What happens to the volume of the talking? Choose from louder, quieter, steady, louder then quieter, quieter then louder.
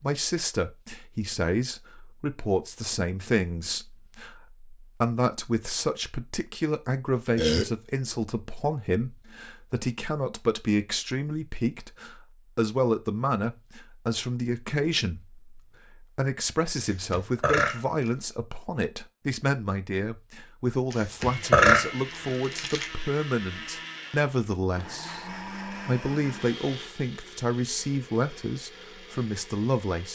steady.